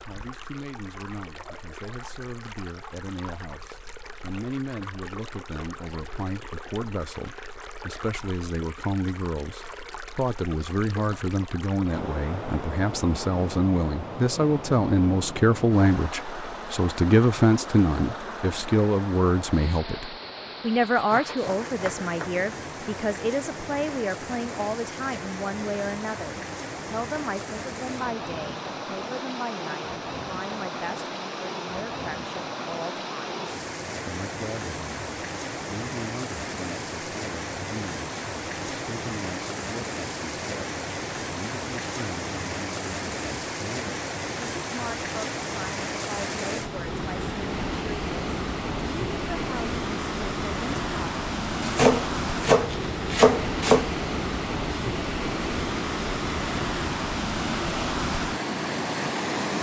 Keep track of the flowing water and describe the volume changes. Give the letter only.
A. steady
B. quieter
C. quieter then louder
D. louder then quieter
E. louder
E.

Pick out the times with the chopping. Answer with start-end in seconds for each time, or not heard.
20.9-22.4, 51.6-53.9.